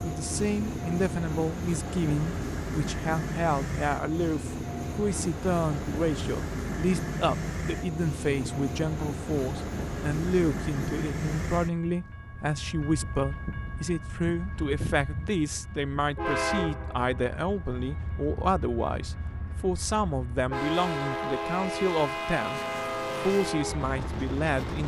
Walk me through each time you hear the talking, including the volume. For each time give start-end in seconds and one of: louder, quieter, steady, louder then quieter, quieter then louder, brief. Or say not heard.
0.0-22.6 steady
23.2-24.8 brief.